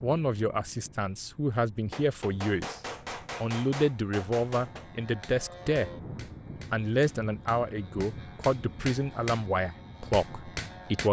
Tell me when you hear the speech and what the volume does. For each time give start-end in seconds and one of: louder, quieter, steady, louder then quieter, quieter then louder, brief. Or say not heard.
0.0-2.8 brief
3.4-5.9 brief
6.7-11.0 steady.